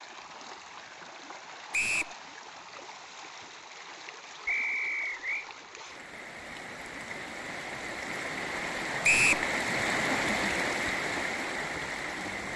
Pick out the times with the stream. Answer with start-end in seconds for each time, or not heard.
0.0-12.5.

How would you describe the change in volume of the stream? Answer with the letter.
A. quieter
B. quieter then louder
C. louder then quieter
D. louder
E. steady
D.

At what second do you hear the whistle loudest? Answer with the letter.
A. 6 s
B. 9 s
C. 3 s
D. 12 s
B.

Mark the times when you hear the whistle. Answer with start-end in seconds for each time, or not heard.
1.7-2.1, 4.5-5.5, 9.0-9.4.